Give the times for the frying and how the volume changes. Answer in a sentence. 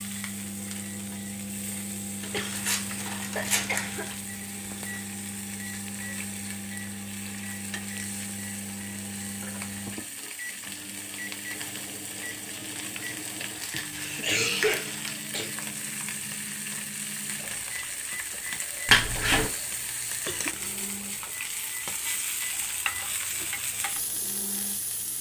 You can hear the frying from 0.0 to 25.1 s, getting louder.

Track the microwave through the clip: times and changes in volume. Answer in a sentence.
You can hear the microwave from 0.0 to 25.1 s, getting quieter.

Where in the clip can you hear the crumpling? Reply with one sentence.
You can hear the crumpling from 2.2 to 4.2 s, from 13.6 to 15.2 s and from 18.9 to 19.5 s.